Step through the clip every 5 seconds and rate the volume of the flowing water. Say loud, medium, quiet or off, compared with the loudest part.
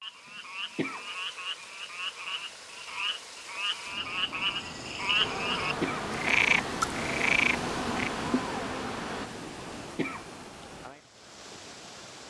medium, loud, medium.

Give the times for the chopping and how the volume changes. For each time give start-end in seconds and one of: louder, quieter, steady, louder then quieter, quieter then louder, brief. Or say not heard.
not heard.